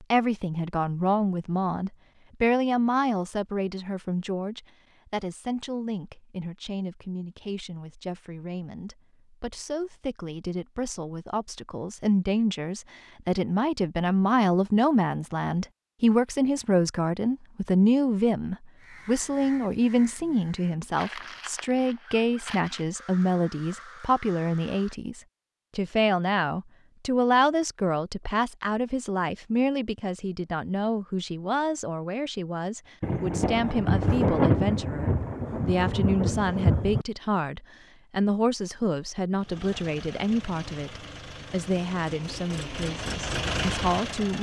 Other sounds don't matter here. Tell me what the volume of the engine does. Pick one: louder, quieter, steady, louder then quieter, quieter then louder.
louder.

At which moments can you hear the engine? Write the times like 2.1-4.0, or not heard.
39.4-44.3.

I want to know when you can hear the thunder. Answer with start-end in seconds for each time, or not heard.
33.0-37.0.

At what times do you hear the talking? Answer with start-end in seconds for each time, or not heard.
0.0-44.3.